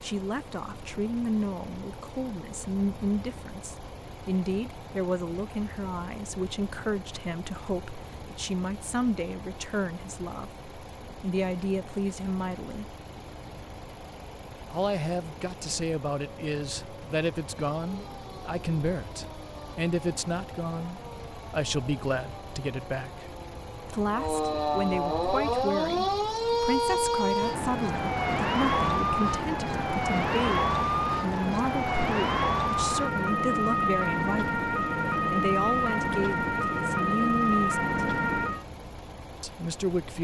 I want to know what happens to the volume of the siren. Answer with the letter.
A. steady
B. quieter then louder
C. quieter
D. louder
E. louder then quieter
D.